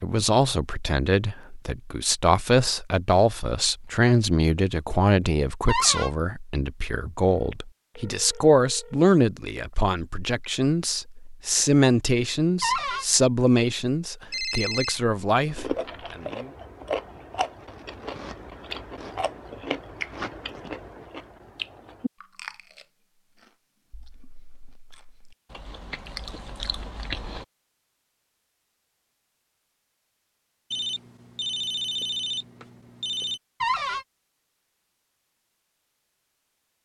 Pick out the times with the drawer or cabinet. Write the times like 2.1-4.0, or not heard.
5.7-6.1, 12.6-13.1, 33.6-34.0.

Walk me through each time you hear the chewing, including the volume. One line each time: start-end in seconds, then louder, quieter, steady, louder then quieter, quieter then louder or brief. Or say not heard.
15.4-27.4 quieter then louder.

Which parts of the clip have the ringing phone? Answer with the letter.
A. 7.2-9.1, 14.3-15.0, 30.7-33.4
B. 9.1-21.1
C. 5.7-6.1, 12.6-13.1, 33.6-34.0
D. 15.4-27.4
A.